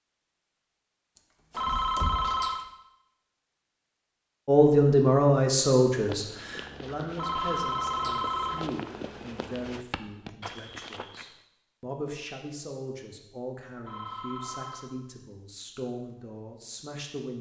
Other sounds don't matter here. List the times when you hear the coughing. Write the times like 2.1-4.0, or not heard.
not heard.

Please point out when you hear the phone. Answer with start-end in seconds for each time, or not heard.
1.6-2.6, 7.2-8.7, 13.8-14.8.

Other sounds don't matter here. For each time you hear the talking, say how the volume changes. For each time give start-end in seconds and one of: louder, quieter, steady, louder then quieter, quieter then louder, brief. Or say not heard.
4.5-17.3 quieter.